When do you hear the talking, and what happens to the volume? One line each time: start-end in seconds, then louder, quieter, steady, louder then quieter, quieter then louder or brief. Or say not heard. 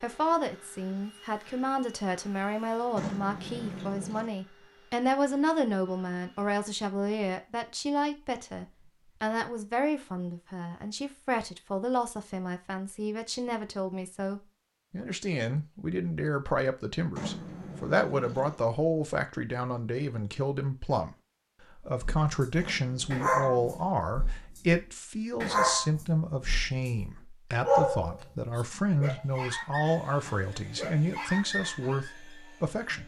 0.0-33.0 steady.